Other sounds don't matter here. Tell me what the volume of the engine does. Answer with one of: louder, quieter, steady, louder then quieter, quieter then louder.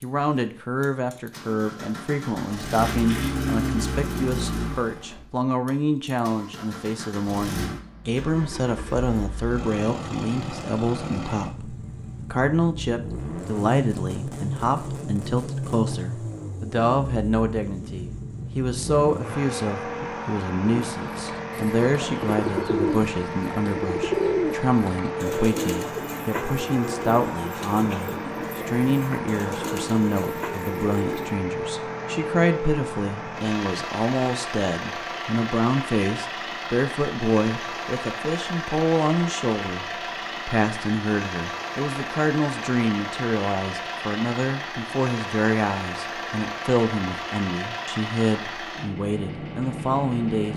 steady.